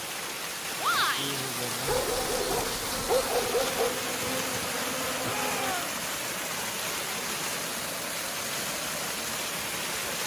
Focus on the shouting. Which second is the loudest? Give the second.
1 s.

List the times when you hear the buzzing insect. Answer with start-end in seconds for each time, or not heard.
1.9-5.8.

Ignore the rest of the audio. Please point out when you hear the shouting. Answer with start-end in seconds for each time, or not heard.
0.8-1.4, 5.2-6.0.